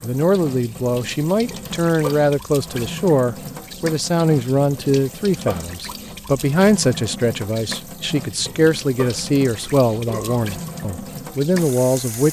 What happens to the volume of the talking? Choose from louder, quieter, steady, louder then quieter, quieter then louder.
steady.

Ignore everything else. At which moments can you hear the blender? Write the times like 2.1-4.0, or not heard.
not heard.